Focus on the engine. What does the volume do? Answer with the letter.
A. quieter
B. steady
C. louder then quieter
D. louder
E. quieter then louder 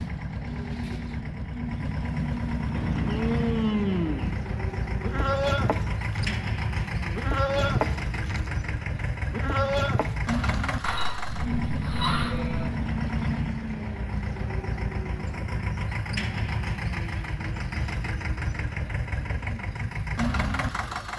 B.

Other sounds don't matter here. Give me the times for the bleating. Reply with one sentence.
You can hear the bleating from 2.7 to 12.7 s.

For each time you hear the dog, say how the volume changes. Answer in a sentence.
You can't hear the dog here.